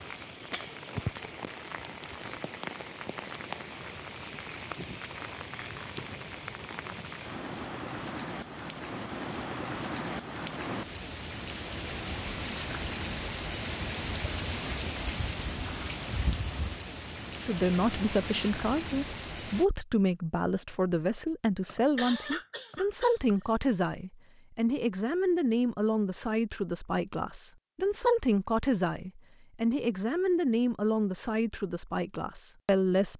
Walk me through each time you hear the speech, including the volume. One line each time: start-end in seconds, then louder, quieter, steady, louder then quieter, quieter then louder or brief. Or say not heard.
17.4-33.1 steady.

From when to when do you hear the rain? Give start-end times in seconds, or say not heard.
0.0-19.6.